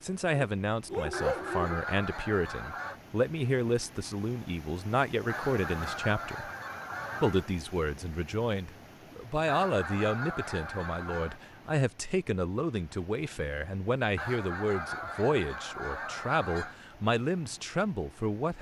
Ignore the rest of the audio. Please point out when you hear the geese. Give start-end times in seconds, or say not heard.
1.1-3.0, 5.2-7.5, 9.4-11.4, 14.2-16.8.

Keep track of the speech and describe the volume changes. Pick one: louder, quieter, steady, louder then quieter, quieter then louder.
steady.